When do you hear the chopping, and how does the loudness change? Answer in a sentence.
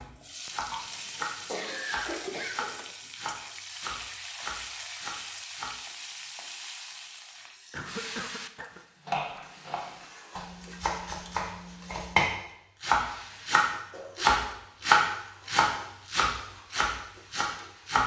You can hear the chopping from 0.0 to 5.7 s, at a steady volume; and from 9.1 to 18.0 s, getting louder then quieter.